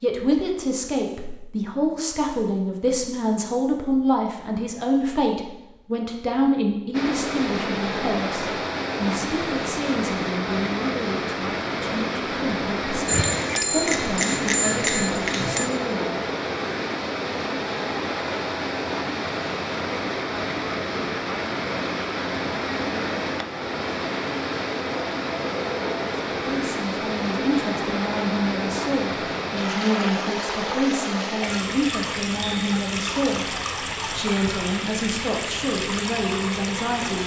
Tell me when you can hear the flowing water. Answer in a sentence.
You can hear the flowing water from 6.9 to 37.2 s.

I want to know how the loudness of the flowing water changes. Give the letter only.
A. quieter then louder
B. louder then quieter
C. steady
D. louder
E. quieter
C.